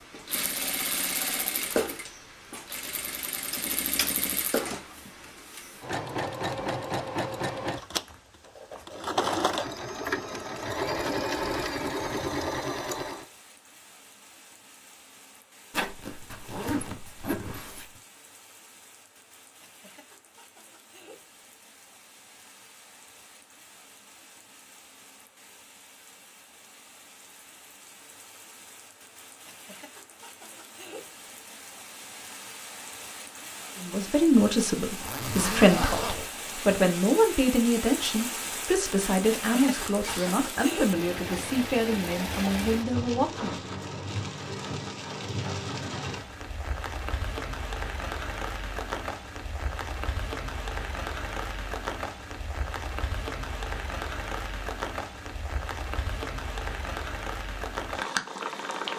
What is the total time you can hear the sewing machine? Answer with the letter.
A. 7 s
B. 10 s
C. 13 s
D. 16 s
C.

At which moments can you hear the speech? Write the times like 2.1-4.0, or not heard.
33.8-43.6.